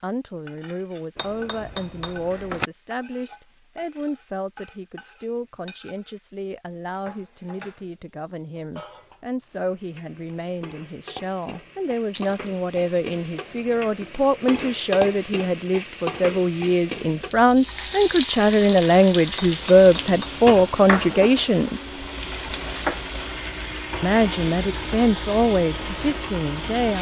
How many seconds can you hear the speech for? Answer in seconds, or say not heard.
25 s.